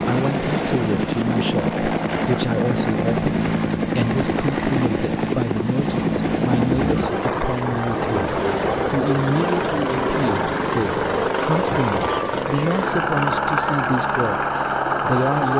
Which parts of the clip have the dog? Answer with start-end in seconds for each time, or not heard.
not heard.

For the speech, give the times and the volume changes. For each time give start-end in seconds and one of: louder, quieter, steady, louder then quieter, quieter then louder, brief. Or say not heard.
0.1-15.5 steady.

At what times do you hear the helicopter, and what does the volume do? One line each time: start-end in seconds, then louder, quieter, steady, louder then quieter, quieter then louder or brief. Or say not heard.
0.0-15.5 steady.